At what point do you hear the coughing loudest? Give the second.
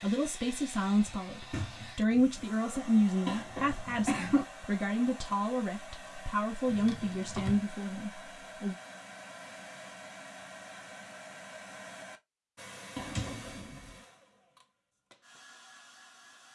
4 s.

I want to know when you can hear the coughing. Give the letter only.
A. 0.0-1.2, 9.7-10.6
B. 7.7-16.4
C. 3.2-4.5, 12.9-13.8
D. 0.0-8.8
C.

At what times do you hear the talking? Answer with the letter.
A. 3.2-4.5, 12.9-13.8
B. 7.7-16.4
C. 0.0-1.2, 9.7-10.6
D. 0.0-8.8
D.